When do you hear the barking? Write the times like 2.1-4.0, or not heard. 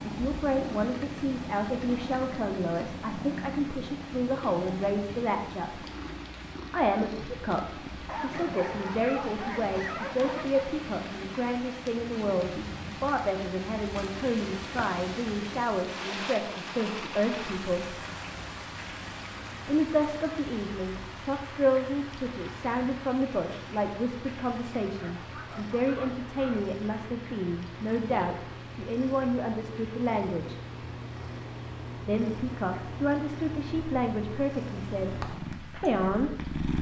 8.1-10.7, 24.9-26.7.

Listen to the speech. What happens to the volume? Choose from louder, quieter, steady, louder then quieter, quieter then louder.
steady.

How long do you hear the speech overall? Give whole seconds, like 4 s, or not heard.
32 s.